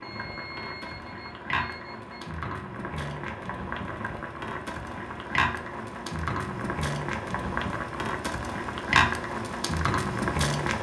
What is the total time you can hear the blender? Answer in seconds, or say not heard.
not heard.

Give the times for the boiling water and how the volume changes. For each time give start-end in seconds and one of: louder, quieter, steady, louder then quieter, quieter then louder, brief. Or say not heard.
0.0-10.7 louder.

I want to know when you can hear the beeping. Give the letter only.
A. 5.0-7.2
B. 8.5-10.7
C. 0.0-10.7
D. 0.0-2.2
D.